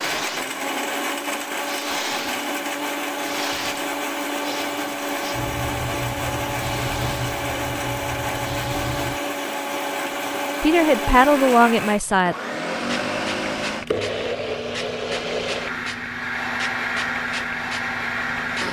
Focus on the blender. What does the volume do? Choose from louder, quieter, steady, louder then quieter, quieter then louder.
steady.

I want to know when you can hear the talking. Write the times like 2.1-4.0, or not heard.
10.6-12.3.